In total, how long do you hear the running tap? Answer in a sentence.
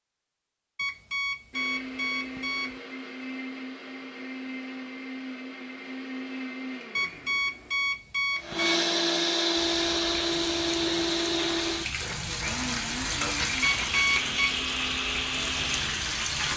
The running tap can be heard for 7 seconds in total.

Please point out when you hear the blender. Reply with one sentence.
The blender can be heard from 1.5 to 16.3 s.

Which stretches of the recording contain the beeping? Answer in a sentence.
The beeping can be heard from 0.8 to 2.8 s, from 7.0 to 8.8 s and from 13.6 to 14.6 s.